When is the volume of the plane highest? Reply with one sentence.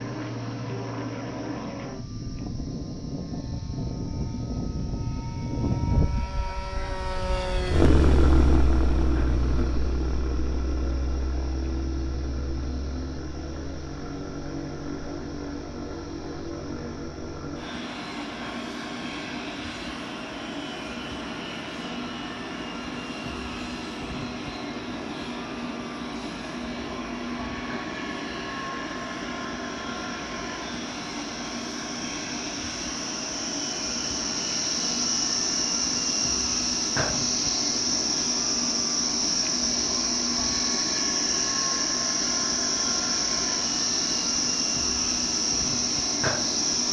The loudest moment of the plane is at 8 seconds.